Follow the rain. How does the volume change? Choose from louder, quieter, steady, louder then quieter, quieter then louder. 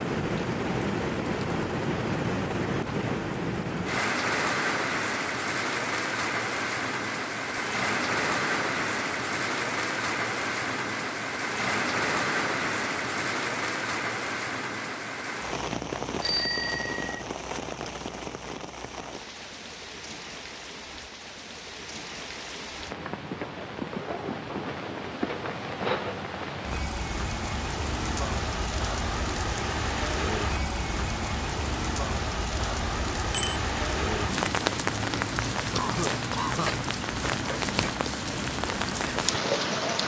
quieter then louder.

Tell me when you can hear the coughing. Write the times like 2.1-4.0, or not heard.
35.7-36.8.